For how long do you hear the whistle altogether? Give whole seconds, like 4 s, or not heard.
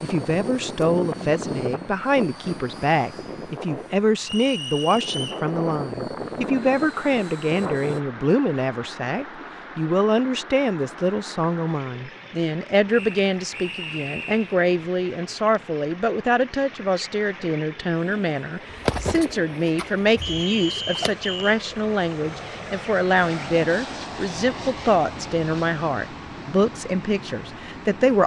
4 s.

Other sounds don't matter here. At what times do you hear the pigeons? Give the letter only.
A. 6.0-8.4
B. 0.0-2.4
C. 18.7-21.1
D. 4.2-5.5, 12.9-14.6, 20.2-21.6
C.